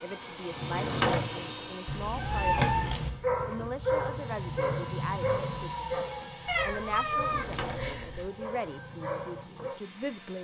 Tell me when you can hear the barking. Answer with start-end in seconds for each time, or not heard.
2.1-9.8.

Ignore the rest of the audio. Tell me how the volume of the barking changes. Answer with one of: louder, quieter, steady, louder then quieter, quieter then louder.
quieter.